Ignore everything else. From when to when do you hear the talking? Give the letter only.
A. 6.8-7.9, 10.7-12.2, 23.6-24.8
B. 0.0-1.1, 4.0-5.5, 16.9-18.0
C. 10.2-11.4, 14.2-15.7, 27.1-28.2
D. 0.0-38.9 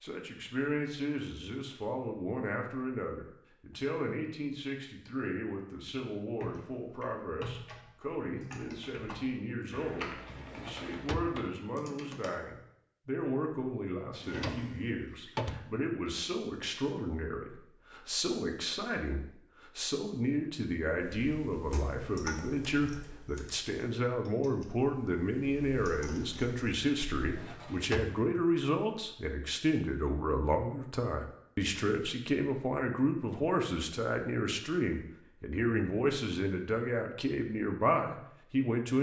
D.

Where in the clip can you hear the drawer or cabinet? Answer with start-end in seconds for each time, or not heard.
10.2-11.4, 14.2-15.7, 27.1-28.2.